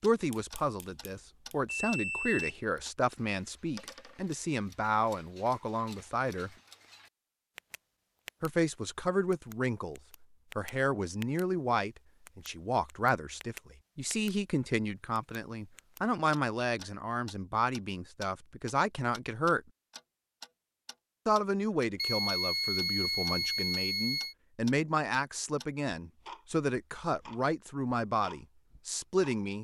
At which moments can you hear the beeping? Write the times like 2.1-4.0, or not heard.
0.3-2.5, 21.9-24.4.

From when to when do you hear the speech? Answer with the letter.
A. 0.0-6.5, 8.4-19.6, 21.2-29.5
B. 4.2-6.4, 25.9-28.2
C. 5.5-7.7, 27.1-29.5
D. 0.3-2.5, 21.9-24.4
A.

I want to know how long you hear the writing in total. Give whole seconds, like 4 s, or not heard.
not heard.